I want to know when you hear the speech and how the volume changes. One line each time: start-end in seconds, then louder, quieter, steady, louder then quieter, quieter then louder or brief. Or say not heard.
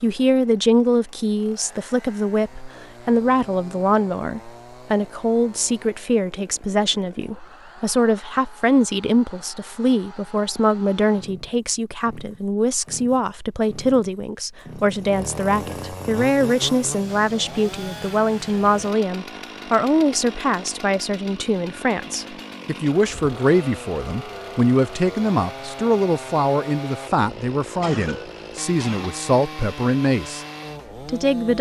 0.0-30.4 steady
31.1-31.5 brief.